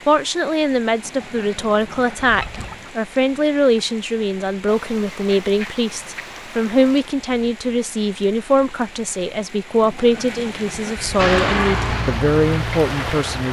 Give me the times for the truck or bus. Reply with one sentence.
The truck or bus can be heard from 11.2 to 13.4 s.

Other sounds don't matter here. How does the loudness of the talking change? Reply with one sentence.
The loudness of the talking stays about the same.